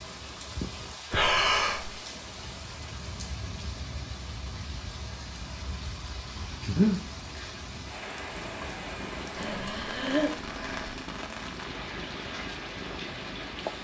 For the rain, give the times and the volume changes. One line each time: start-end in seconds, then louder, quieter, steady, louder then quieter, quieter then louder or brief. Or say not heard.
0.0-13.7 steady.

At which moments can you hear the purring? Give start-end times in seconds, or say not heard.
8.3-13.7.